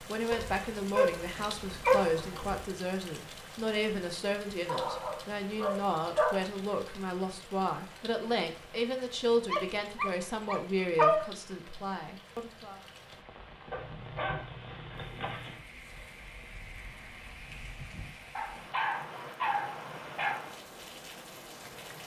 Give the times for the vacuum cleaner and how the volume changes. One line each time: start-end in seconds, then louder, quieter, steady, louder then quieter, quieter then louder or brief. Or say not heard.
not heard.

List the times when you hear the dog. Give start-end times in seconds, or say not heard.
0.3-2.6, 4.7-6.5, 9.5-11.2, 13.7-15.6, 18.4-20.4.